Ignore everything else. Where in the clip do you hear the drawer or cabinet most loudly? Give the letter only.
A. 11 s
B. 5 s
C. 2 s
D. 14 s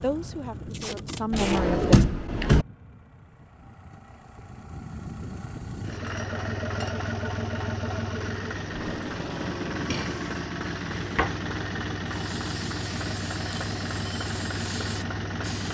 C.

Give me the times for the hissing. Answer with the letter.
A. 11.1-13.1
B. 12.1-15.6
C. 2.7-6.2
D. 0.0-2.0
B.